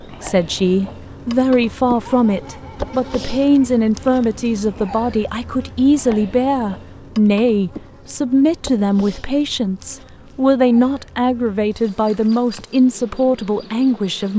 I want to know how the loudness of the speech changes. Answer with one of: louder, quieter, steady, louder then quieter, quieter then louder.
steady.